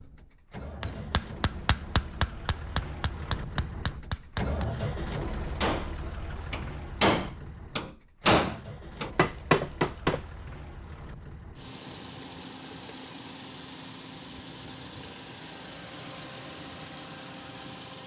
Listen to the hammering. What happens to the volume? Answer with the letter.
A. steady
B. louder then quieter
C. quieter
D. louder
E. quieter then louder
D.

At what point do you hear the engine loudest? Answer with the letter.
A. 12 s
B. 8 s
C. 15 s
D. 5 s
D.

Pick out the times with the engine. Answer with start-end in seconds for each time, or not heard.
0.0-18.0.